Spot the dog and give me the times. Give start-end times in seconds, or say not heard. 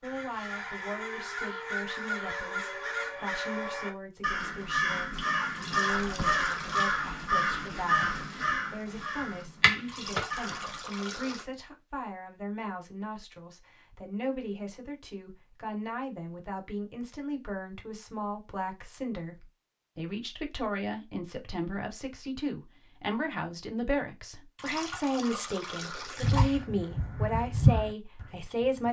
not heard.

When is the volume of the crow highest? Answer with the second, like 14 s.
28 s.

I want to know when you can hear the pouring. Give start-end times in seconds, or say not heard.
5.5-7.0, 9.8-11.4, 24.6-26.6.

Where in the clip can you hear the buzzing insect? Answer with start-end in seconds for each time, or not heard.
not heard.